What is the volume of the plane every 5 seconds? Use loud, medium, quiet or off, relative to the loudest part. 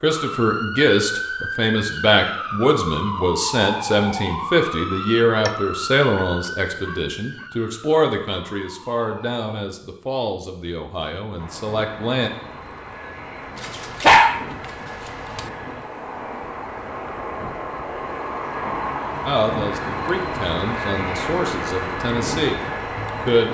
off, off, medium, loud, loud.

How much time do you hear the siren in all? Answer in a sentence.
You can hear the siren for 10 seconds altogether.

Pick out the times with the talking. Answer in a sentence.
The talking can be heard from 0.0 to 12.3 s and from 19.2 to 23.5 s.